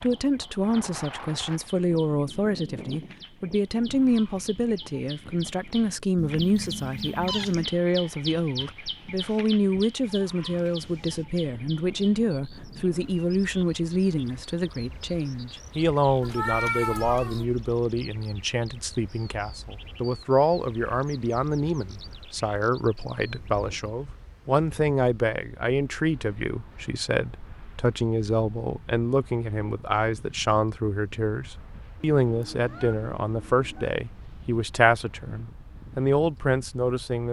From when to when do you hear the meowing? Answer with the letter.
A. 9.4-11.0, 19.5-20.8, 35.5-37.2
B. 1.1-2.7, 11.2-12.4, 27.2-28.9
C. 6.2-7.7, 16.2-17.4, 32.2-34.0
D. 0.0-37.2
C.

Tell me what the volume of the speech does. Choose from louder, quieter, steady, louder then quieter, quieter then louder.
steady.